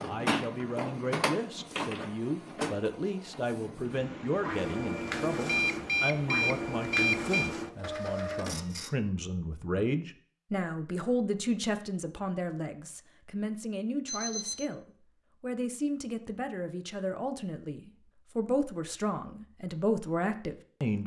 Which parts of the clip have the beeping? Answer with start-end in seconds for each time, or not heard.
5.5-7.5, 14.1-14.7.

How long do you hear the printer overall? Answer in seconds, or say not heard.
9 s.